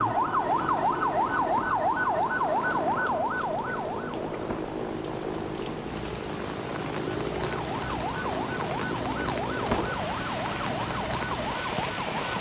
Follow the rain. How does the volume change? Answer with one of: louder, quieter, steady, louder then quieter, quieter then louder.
louder.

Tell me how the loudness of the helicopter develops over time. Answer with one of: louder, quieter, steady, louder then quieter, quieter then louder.
steady.